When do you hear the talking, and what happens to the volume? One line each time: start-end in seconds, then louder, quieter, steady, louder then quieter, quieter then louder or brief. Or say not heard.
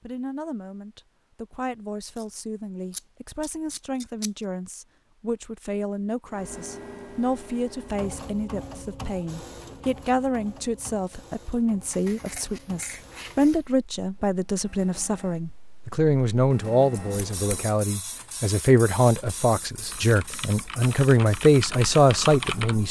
0.0-22.8 louder.